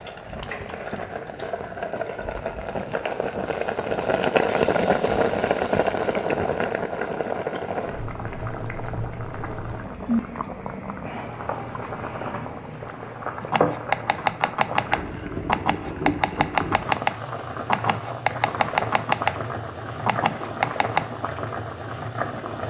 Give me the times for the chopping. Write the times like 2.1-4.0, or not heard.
13.4-21.1.